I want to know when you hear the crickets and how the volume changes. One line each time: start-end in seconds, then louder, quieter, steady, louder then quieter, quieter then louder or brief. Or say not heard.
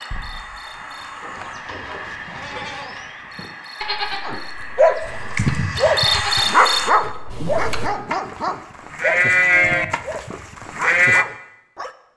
0.0-6.9 louder.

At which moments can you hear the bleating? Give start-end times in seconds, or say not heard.
0.1-11.2.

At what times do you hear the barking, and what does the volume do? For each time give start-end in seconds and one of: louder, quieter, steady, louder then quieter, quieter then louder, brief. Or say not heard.
4.2-11.9 quieter.